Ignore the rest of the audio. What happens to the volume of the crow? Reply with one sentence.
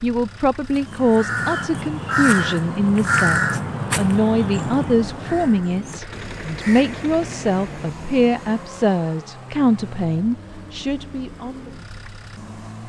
The volume of the crow goes down.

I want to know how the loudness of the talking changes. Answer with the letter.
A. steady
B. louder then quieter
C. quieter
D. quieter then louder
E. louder
A.